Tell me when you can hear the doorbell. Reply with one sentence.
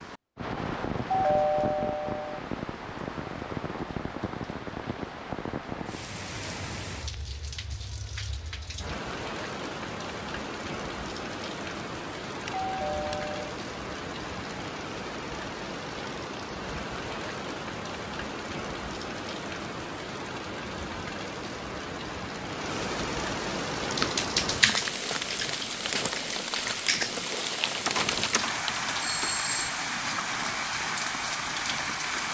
You can hear the doorbell from 1.1 to 2.4 s, from 12.4 to 13.6 s and from 28.9 to 29.6 s.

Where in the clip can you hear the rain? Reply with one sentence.
You can hear the rain from 0.0 to 32.2 s.